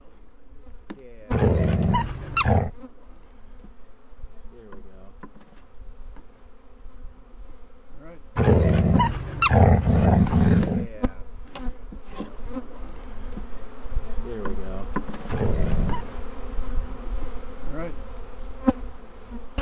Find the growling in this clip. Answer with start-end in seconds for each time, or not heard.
1.3-2.7, 8.3-10.8, 15.2-16.1.